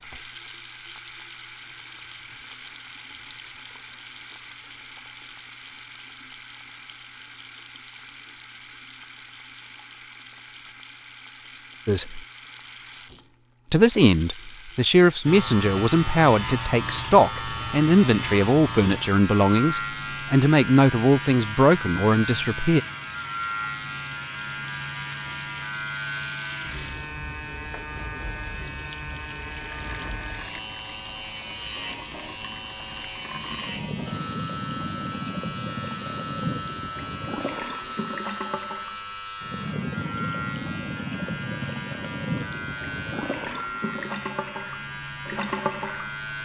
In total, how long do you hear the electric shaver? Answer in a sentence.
You can hear the electric shaver for 31 seconds altogether.